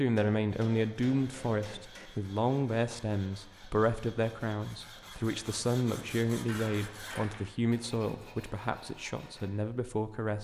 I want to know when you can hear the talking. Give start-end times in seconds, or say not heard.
0.0-10.3.